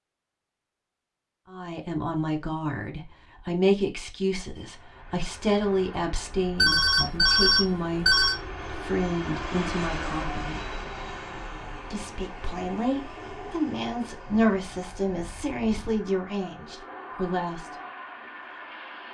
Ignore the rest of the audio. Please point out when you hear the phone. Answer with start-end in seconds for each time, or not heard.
6.5-8.3.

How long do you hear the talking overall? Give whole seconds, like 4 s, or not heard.
15 s.